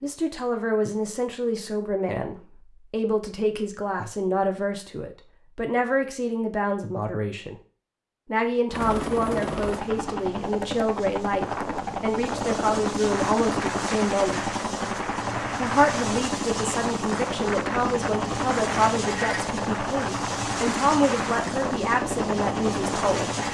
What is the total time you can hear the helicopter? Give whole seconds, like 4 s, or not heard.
15 s.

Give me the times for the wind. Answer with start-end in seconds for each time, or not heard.
11.2-23.2.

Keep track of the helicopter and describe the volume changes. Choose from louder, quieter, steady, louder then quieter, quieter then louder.
steady.